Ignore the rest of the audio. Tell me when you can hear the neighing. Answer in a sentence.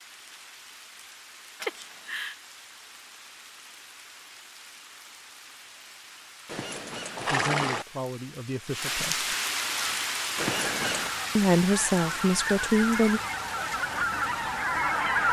The neighing can be heard from 1.6 to 2.4 s, from 6.5 to 7.8 s and from 10.3 to 11.1 s.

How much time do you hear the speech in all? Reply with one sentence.
The speech can be heard for 4 seconds in total.